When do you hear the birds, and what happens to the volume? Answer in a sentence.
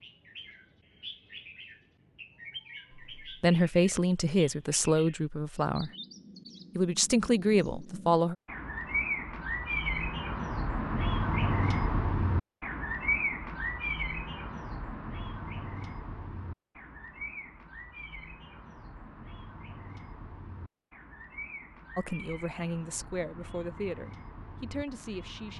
The birds can be heard from 0.0 to 25.5 s, getting louder then quieter.